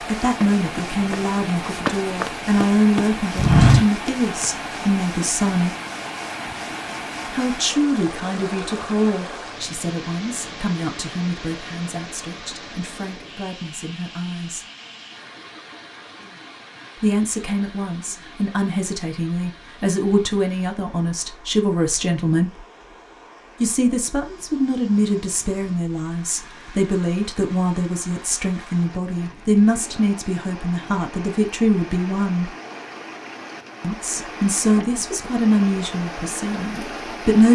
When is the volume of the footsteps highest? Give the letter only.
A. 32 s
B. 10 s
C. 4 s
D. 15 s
C.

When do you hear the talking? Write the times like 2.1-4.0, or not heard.
0.1-5.8, 7.3-14.7, 17.0-22.6, 23.6-32.5, 33.8-37.4.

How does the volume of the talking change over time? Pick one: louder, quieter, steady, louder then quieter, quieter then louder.
quieter then louder.